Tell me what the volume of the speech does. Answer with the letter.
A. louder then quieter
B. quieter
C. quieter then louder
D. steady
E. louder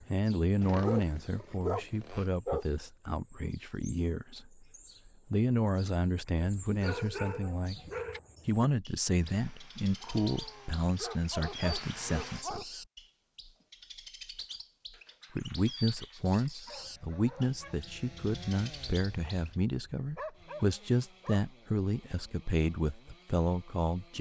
D.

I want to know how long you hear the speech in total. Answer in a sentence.
The speech can be heard for 21 seconds in total.